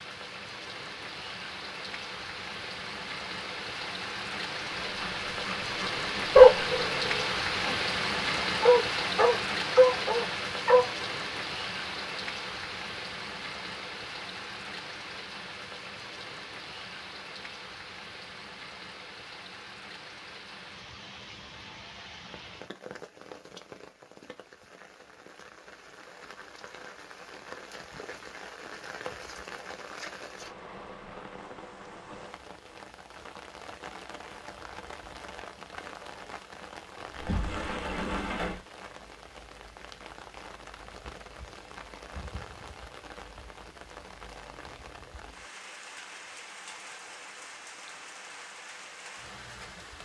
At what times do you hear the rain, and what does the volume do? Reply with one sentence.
The rain can be heard from 0.0 to 50.0 s, getting quieter.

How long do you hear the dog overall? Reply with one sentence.
The dog can be heard for 6 seconds in total.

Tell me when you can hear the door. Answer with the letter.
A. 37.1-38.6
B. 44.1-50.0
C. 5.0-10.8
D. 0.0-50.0
A.